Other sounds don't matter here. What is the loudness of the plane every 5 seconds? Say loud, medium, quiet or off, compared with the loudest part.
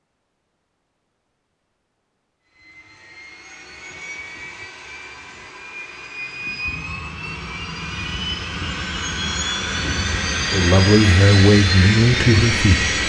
quiet, medium, loud.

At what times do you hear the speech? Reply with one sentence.
You can hear the speech from 10.5 to 13.0 s.